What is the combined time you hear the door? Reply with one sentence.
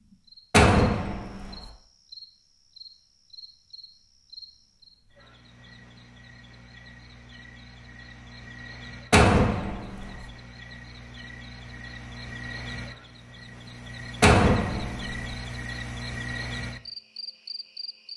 The door can be heard for 3 seconds in total.